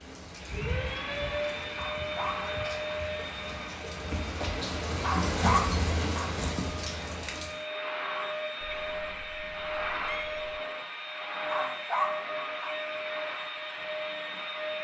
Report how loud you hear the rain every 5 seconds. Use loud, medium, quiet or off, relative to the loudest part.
medium, loud, off.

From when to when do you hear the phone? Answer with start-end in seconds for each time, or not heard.
not heard.